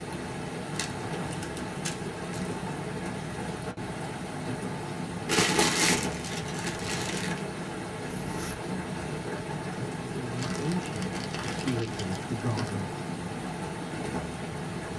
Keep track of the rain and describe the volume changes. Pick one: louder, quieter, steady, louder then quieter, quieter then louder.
steady.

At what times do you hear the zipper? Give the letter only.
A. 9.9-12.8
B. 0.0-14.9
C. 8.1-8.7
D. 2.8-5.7
C.